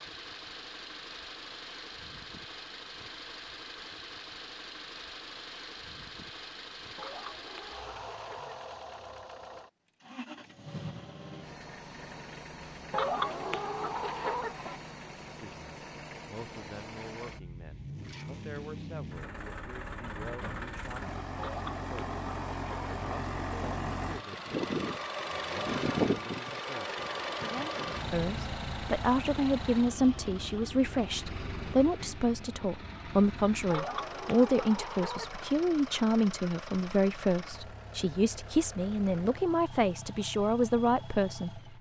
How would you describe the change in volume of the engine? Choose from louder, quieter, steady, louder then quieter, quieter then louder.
louder then quieter.